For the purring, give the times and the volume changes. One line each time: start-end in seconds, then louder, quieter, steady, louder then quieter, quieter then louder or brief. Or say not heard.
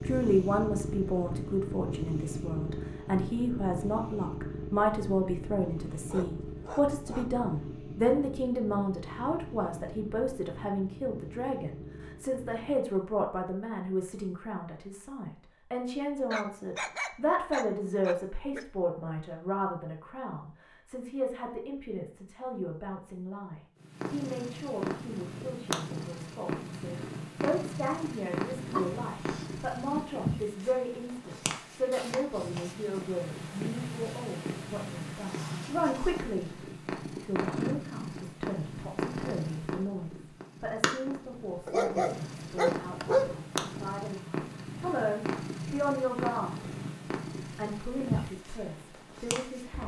0.0-12.8 quieter
23.8-49.8 steady.